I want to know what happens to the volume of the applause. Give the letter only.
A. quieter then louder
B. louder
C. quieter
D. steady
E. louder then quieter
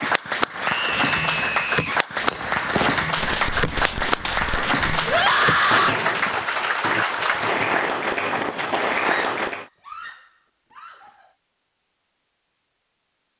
D.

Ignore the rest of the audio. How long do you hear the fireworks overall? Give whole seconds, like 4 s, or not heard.
6 s.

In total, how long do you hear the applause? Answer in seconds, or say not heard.
10 s.